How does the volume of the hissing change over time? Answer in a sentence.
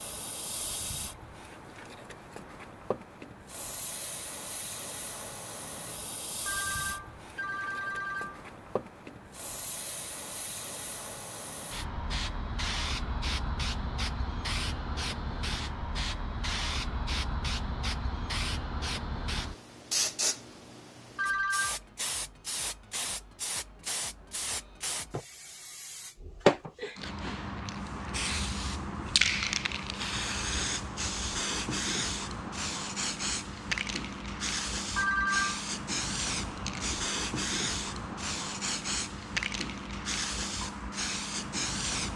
The volume of the hissing goes up.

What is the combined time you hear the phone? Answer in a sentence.
The phone can be heard for 3 seconds in total.